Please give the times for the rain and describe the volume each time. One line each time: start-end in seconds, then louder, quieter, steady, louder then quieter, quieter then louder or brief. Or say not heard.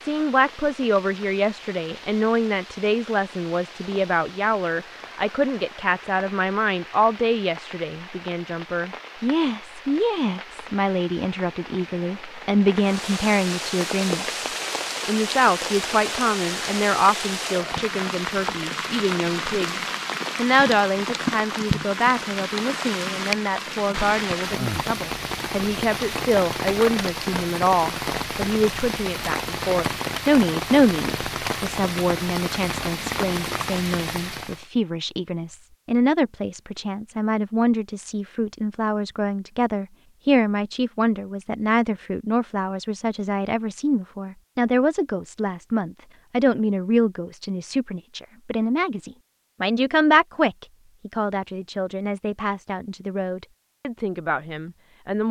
0.0-34.6 louder.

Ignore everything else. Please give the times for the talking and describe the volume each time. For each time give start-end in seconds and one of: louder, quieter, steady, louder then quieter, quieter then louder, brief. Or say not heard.
0.0-14.4 steady
15.1-55.2 steady.